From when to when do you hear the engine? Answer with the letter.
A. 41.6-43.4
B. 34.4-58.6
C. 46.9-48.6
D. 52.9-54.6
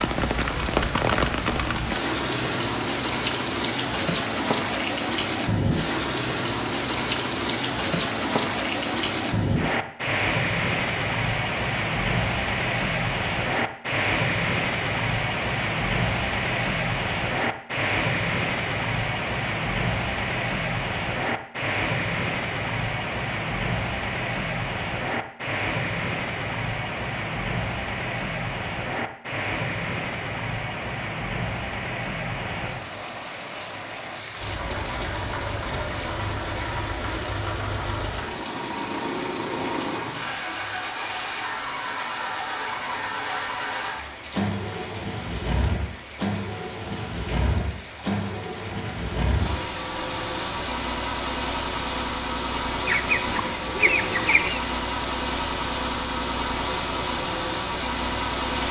B.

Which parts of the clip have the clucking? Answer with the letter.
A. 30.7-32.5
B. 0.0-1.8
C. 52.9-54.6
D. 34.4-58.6
C.